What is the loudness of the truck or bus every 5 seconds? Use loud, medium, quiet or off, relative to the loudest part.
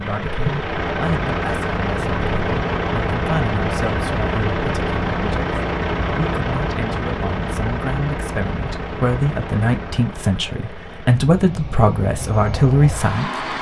loud, loud, medium.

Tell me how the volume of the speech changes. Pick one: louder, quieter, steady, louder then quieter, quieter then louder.
louder.